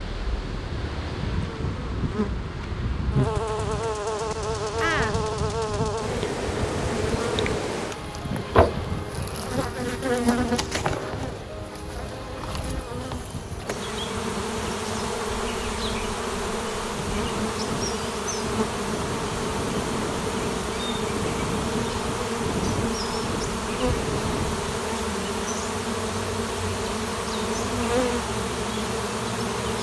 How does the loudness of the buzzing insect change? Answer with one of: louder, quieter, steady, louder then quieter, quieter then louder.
steady.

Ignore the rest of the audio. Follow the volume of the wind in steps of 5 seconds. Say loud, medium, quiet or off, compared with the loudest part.
loud, loud, medium, loud, loud, off.